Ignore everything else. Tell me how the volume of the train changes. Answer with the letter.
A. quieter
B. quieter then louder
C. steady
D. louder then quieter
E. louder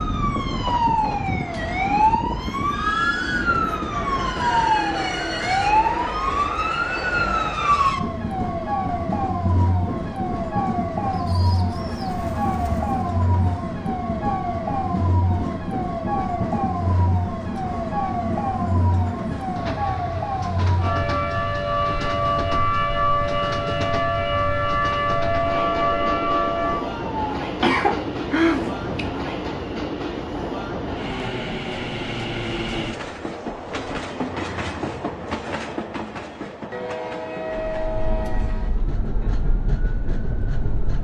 C.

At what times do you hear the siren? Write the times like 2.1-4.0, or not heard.
0.0-27.2, 37.7-40.9.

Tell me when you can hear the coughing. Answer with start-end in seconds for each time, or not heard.
27.6-29.1.